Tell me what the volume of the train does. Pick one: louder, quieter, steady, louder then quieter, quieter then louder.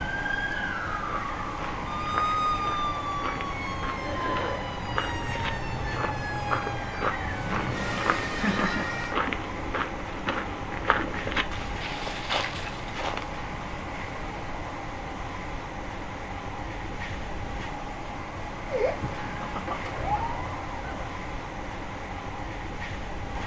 steady.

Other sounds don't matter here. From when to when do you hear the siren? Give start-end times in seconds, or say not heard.
0.0-9.2, 18.6-21.1.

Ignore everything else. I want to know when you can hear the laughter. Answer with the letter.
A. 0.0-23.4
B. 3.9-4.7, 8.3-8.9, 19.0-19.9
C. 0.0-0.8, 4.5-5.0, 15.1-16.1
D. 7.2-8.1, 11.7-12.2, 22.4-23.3
B.